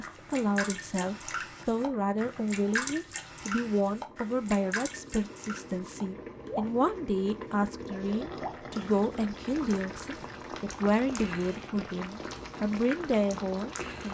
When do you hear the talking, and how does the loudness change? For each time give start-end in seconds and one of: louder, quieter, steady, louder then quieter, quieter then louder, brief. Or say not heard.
0.0-14.1 steady.